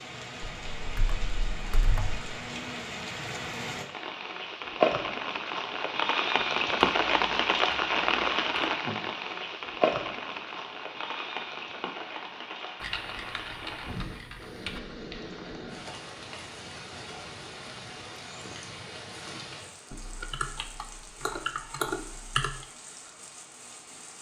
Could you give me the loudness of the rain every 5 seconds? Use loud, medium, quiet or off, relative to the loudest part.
medium, loud, medium, quiet, quiet.